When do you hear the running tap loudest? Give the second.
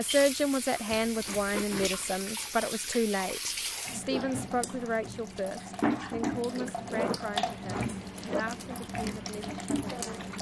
6 s.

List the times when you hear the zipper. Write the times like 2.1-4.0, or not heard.
0.8-2.6, 6.4-8.4.